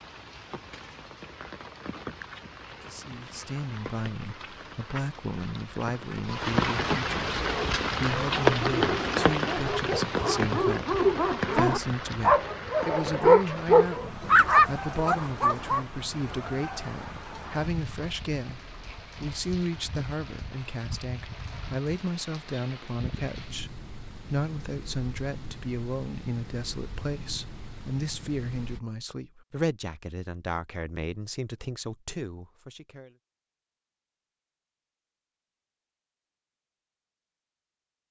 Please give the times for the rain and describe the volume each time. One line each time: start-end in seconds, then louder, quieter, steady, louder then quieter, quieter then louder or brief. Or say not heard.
0.0-28.8 louder then quieter.